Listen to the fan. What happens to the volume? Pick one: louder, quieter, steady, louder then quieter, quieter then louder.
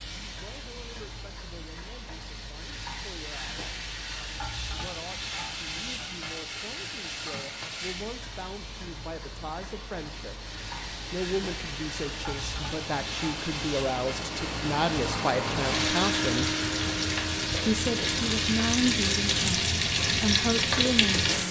louder.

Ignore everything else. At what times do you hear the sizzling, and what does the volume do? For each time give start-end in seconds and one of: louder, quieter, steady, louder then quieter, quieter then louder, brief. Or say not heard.
0.0-21.4 louder.